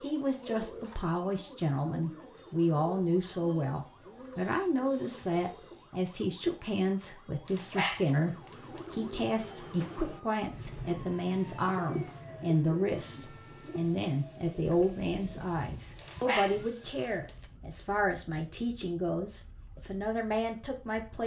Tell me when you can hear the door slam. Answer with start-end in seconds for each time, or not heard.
not heard.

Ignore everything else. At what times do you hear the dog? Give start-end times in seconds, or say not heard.
7.5-8.9, 15.9-17.4.